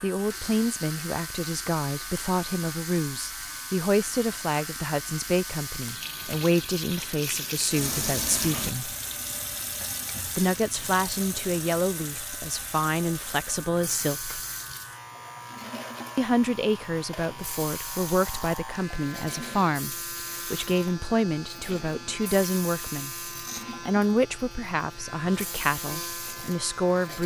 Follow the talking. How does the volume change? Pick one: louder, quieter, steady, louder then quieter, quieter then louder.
steady.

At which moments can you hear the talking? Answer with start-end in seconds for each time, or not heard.
0.0-8.9, 10.3-14.4, 16.1-27.2.